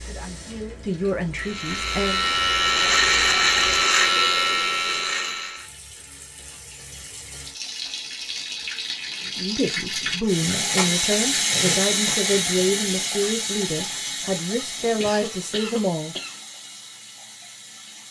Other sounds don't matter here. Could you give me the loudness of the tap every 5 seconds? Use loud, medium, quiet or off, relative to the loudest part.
quiet, medium, loud, quiet.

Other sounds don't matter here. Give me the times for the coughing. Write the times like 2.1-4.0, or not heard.
14.9-16.4.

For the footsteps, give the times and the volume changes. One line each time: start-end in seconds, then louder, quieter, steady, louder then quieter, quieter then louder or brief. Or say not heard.
not heard.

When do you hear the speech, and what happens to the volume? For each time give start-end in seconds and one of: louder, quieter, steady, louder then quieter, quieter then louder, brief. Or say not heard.
0.0-2.2 brief
9.2-16.1 steady.